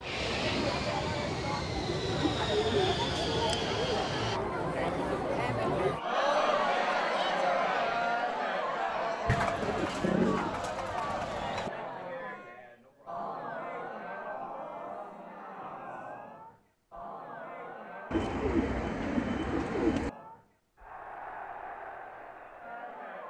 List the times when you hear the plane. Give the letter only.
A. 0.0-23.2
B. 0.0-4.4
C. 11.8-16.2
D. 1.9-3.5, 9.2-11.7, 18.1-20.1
B.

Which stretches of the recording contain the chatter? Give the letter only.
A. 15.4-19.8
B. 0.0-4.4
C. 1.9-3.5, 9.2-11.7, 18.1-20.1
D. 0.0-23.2
D.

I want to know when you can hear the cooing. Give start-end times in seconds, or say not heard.
1.9-3.5, 9.2-11.7, 18.1-20.1.